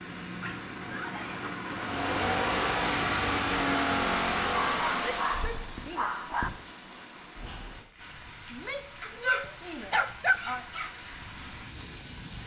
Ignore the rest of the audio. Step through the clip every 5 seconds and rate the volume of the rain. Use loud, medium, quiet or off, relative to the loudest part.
loud, medium, medium.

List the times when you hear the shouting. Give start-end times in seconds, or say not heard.
0.8-1.4, 5.2-6.3, 8.5-10.7.